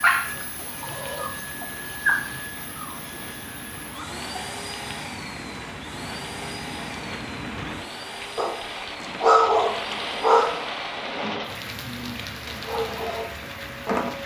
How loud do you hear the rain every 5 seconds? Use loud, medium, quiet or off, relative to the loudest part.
medium, loud, loud.